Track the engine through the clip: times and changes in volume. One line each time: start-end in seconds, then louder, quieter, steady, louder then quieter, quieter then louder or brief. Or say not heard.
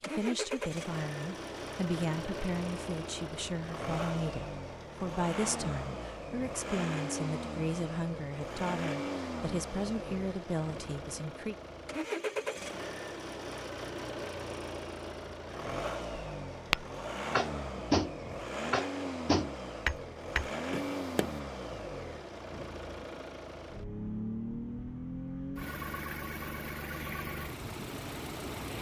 0.0-28.7 steady.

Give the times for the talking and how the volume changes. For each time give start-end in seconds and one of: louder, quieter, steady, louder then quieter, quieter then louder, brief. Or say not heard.
0.0-11.6 steady.